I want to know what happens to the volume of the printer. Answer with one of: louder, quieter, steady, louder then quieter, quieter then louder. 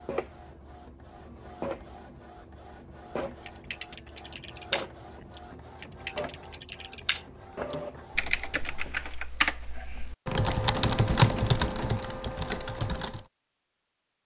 steady.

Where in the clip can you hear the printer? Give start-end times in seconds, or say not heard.
0.0-9.2.